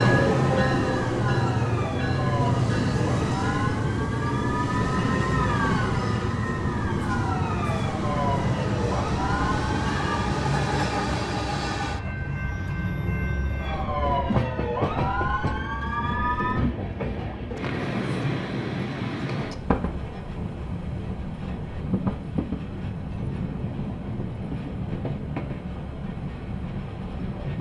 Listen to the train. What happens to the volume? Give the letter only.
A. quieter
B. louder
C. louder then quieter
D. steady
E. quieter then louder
A.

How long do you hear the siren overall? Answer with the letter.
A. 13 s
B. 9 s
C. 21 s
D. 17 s
A.